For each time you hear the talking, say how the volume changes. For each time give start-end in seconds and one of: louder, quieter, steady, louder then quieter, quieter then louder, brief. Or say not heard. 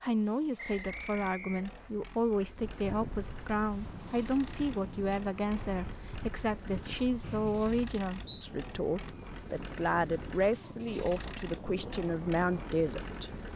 0.0-13.3 steady.